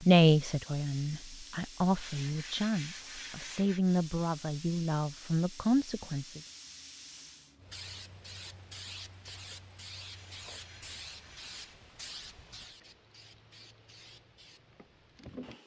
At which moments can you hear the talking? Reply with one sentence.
The talking can be heard from 0.0 to 6.4 s.